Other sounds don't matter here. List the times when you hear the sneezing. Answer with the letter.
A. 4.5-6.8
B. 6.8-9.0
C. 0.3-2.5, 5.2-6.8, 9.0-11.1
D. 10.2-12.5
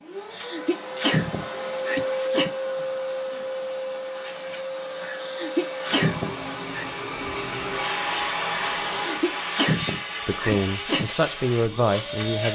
C.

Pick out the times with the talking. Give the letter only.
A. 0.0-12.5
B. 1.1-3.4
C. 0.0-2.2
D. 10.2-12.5
D.